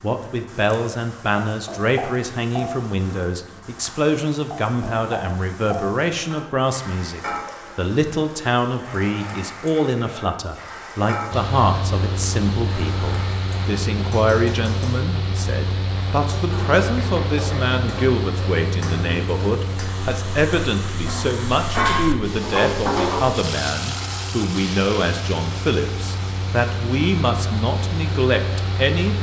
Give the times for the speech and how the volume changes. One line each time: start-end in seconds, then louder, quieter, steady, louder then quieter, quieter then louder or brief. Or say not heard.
0.0-29.1 steady.